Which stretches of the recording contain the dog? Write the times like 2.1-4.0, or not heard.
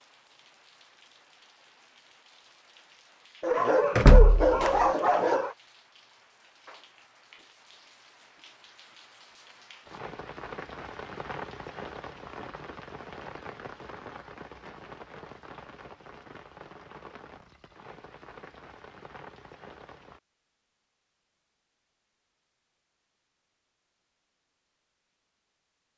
3.4-5.5.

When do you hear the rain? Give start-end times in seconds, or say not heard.
0.0-20.2.